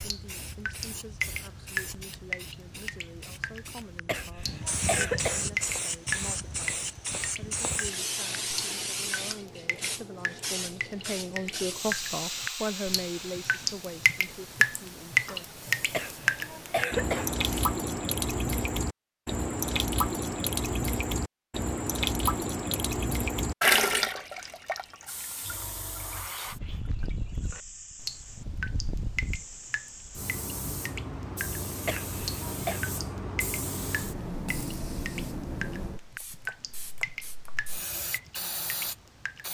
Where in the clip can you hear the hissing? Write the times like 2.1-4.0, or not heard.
0.0-17.2, 25.1-39.4.